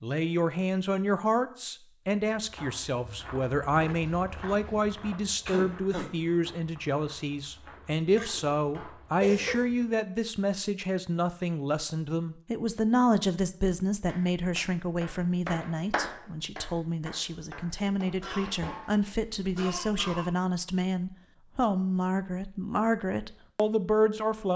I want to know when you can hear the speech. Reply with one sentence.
You can hear the speech from 0.0 to 24.5 s.